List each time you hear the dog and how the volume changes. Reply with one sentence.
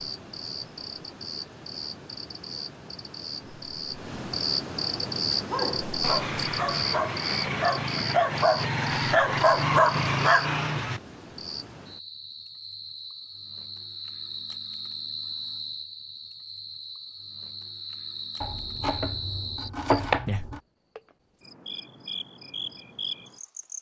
The dog can be heard from 5.0 to 11.0 s, getting louder.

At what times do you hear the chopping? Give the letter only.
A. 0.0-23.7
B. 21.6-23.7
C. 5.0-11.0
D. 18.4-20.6
D.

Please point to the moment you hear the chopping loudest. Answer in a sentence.
The loudest moment of the chopping is at 20 seconds.